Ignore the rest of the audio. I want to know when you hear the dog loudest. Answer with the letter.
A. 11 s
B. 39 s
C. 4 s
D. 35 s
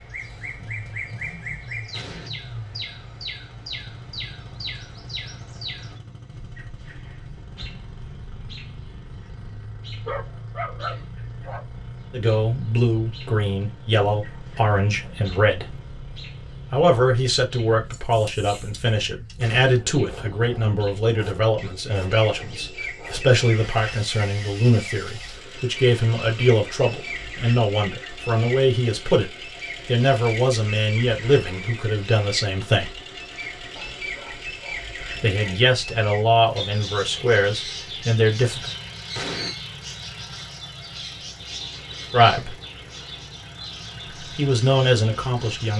A.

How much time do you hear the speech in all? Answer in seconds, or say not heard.
25 s.